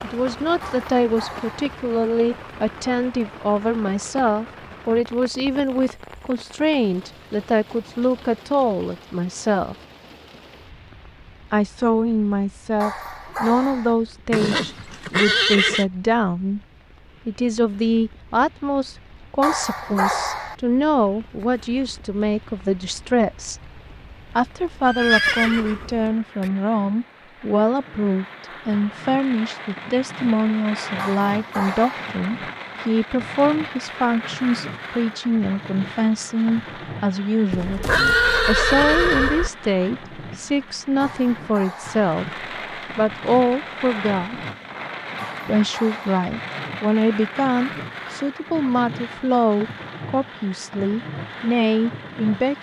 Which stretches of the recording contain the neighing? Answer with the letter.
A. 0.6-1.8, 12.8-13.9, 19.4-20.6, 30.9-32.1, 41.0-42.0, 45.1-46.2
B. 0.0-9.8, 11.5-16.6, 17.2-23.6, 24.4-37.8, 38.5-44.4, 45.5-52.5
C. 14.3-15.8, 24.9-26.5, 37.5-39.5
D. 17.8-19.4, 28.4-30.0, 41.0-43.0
C.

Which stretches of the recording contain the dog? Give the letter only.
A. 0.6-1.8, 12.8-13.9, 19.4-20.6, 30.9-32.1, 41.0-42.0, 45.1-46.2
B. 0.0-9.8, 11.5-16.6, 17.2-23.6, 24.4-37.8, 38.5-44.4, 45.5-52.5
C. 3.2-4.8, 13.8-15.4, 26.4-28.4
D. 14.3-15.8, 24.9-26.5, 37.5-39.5
A.